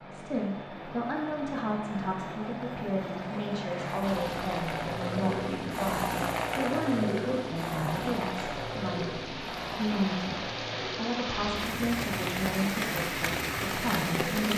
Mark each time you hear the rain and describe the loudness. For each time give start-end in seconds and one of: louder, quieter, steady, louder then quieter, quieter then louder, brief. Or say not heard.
4.0-14.5 louder.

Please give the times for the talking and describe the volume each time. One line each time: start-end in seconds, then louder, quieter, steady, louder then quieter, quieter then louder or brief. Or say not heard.
0.0-14.5 steady.